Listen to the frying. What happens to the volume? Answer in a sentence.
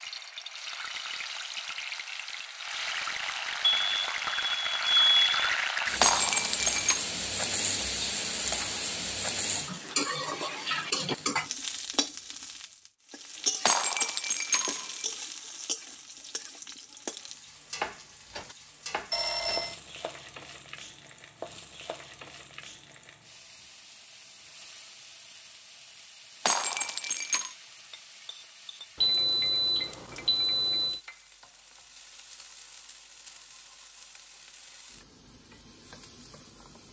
The loudness of the frying goes down.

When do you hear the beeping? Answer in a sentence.
You can hear the beeping from 3.6 to 5.3 s, from 19.1 to 19.8 s and from 29.0 to 31.0 s.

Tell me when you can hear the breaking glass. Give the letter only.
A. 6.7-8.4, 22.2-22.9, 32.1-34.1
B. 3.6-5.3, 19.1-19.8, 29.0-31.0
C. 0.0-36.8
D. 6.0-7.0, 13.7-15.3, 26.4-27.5
D.